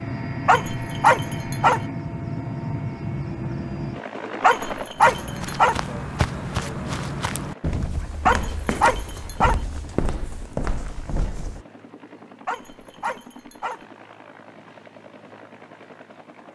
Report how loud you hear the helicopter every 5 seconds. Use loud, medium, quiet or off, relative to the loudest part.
loud, quiet, quiet, quiet.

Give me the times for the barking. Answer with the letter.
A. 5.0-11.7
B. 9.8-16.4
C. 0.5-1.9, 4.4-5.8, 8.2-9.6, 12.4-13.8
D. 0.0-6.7
C.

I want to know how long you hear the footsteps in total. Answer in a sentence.
The footsteps can be heard for 7 seconds in total.